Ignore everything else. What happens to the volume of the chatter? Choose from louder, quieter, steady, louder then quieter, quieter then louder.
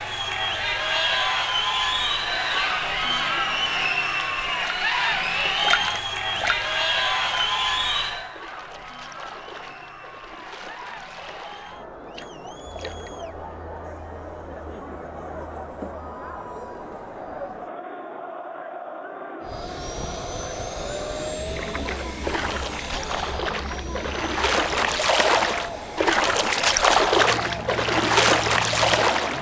quieter.